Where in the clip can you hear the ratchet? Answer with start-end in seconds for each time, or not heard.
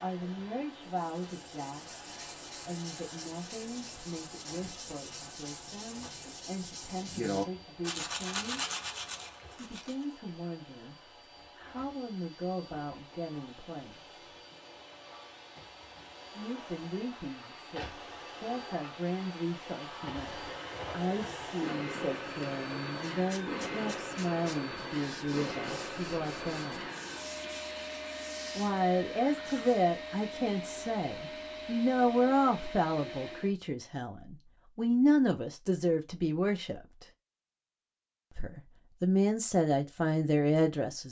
not heard.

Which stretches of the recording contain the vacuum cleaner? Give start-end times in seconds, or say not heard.
0.0-33.5.